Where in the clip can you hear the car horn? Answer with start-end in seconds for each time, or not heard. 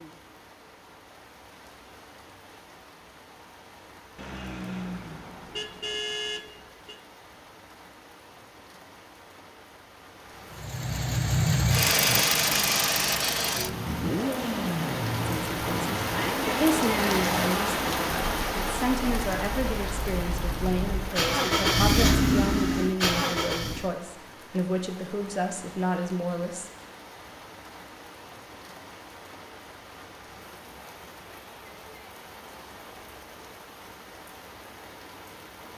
4.2-7.0.